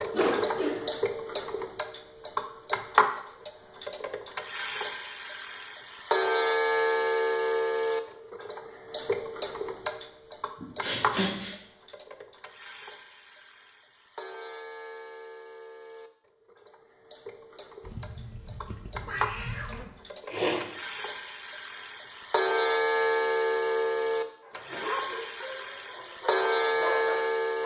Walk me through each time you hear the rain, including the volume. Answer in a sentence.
The rain can't be heard in this clip.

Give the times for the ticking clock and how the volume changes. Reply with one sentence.
The ticking clock can be heard from 0.0 to 27.6 s, getting quieter then louder.